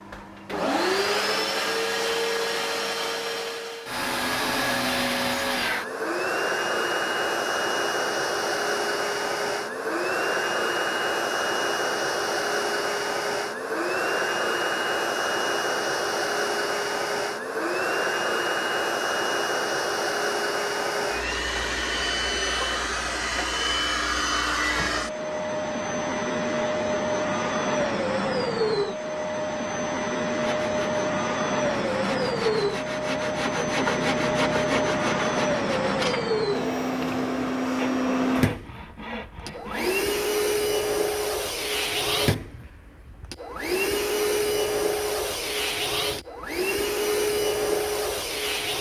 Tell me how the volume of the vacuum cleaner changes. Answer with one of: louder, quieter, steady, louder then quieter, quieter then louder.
steady.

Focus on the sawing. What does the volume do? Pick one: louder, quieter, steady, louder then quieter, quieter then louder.
louder then quieter.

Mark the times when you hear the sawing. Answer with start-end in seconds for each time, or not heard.
30.4-40.2.